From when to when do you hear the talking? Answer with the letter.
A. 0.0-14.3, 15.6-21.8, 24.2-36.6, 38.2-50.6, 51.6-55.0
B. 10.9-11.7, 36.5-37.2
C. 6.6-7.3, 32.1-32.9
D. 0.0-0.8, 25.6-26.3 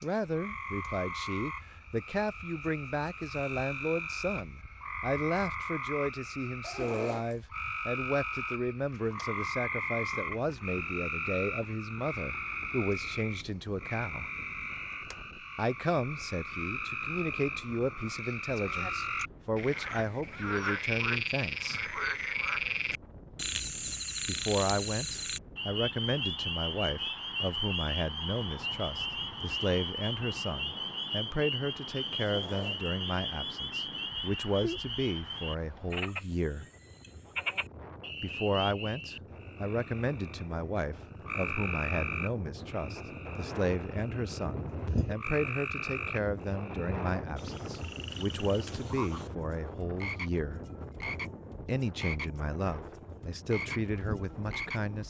A.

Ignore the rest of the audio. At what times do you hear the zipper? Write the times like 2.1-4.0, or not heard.
6.6-7.3, 32.1-32.9.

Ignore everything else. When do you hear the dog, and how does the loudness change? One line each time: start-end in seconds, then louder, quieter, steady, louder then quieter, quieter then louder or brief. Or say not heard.
not heard.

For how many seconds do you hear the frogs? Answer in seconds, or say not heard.
55 s.